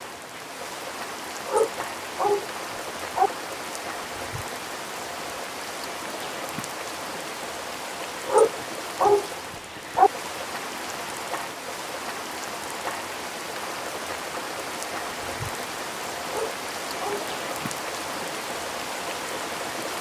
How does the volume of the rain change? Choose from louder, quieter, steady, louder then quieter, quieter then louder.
steady.